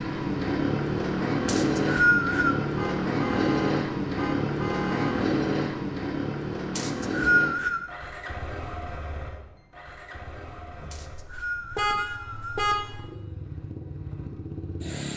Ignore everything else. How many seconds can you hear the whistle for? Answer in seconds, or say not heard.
4 s.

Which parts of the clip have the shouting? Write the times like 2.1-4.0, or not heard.
not heard.